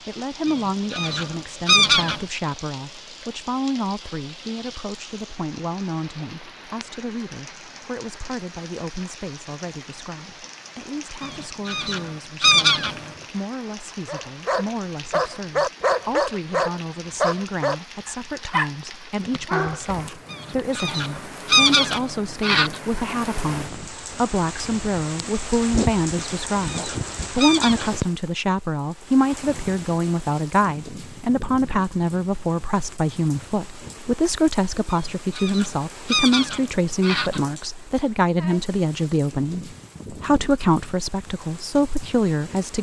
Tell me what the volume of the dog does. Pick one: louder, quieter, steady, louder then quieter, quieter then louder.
quieter.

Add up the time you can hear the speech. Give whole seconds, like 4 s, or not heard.
43 s.